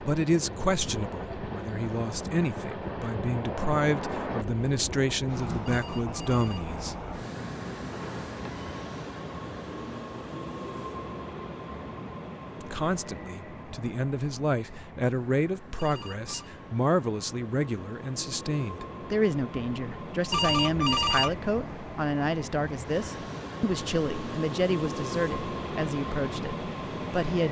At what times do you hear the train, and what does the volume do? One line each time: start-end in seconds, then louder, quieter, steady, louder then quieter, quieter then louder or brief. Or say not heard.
0.0-27.4 quieter then louder.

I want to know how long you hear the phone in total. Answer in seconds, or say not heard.
3 s.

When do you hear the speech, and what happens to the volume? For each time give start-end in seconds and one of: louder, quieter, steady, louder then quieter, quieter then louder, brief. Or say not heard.
0.0-7.0 steady
12.6-27.4 steady.